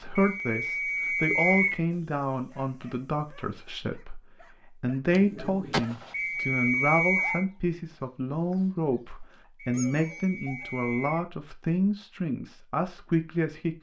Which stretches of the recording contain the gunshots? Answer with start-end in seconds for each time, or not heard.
5.0-6.2.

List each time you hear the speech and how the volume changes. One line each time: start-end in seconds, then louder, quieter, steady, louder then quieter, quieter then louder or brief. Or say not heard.
0.0-13.7 steady.